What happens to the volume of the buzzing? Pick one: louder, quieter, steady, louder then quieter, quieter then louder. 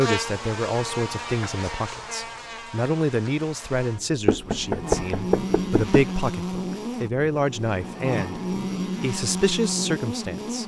quieter then louder.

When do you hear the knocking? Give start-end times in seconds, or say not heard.
4.2-6.0.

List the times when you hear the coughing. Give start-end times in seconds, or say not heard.
not heard.